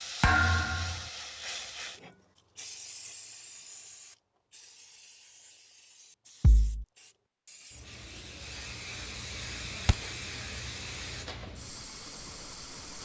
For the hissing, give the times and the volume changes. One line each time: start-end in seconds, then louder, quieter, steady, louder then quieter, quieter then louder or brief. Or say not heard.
0.0-13.0 quieter then louder.